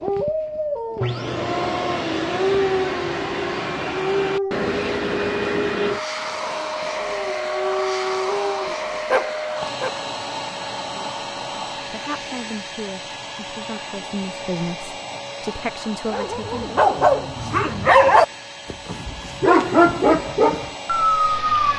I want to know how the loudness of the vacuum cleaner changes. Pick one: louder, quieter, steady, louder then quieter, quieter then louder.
quieter.